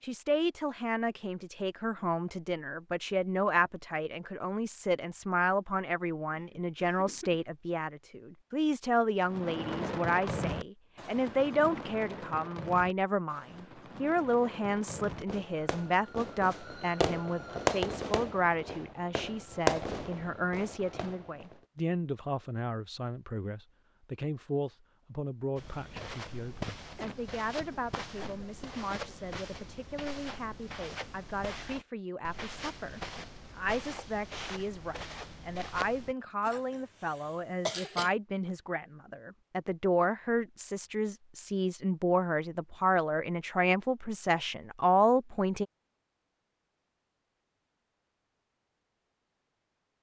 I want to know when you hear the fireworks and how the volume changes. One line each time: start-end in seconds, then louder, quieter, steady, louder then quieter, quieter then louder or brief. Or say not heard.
9.2-21.6 quieter then louder.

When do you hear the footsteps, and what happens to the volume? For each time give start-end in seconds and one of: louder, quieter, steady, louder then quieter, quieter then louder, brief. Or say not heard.
25.6-36.1 steady.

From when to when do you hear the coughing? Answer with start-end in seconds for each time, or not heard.
6.3-7.5, 26.9-29.1, 36.4-38.1.